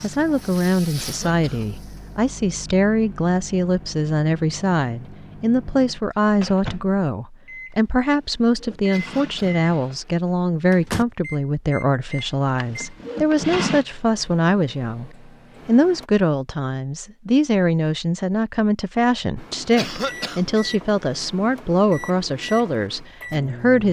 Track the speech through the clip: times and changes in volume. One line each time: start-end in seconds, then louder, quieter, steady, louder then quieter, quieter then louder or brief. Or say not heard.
0.0-23.8 steady.